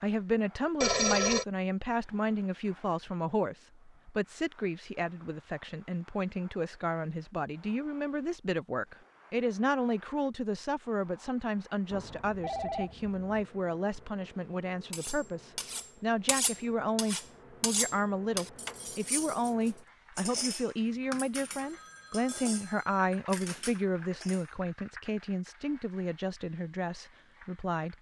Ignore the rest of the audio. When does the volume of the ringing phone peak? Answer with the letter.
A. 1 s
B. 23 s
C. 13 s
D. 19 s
A.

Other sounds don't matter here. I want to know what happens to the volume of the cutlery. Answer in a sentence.
The loudness of the cutlery goes down.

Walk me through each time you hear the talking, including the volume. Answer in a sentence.
The talking can be heard from 0.0 to 27.9 s, at a steady volume.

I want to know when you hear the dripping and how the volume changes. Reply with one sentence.
You can't hear the dripping here.